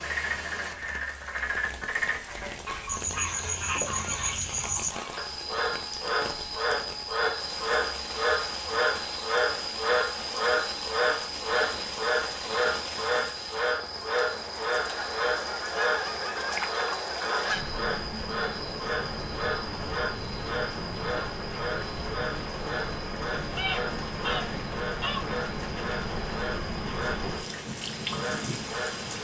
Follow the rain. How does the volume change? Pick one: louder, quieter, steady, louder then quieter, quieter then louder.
louder.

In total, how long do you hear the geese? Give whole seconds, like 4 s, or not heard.
7 s.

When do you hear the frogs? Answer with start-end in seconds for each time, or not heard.
0.0-29.1.